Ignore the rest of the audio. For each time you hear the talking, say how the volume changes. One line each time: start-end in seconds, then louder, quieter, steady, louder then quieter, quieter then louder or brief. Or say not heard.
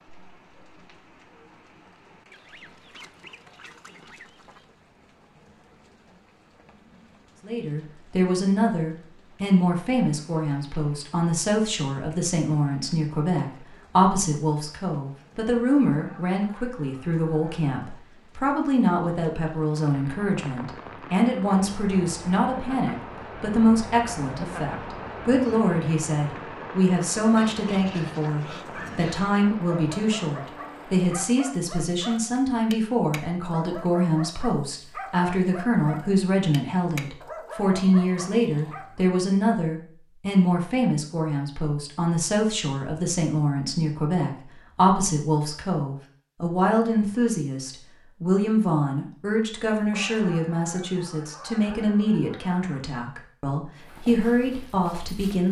7.5-55.4 steady.